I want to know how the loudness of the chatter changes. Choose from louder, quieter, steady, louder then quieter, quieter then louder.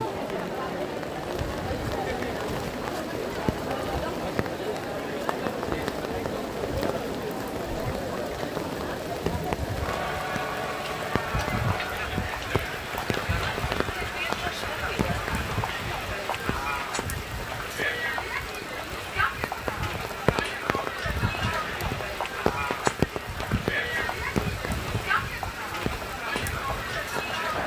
steady.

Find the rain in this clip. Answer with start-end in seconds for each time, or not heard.
0.0-27.6.